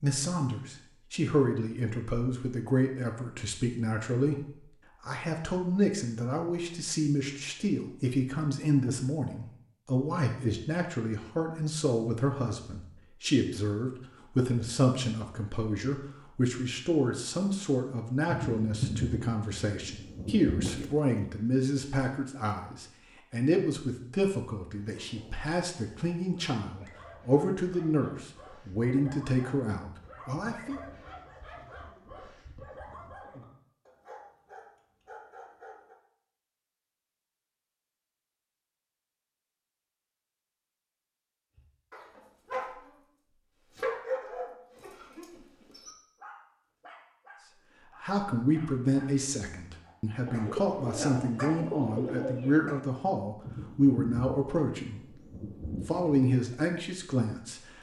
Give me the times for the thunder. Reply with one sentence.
The thunder can be heard from 18.2 to 20.9 s and from 53.4 to 56.2 s.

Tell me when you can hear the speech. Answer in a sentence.
The speech can be heard from 0.0 to 30.8 s, from 48.0 to 55.2 s and from 55.9 to 57.7 s.